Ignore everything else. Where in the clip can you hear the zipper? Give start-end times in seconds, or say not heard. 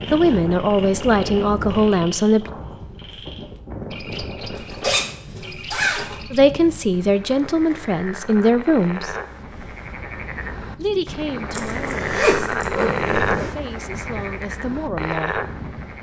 4.5-6.2, 11.5-13.5.